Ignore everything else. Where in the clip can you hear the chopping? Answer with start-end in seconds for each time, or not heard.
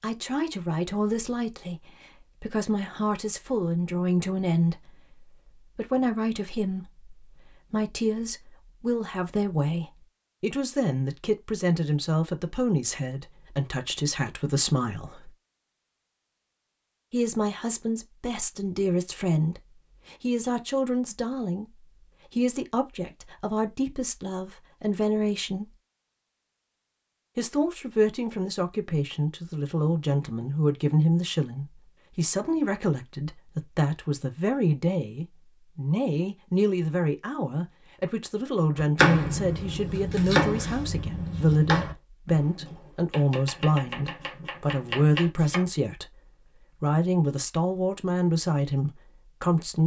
38.8-45.6.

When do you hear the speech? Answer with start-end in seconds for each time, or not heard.
0.0-15.3, 17.1-25.8, 27.4-49.8.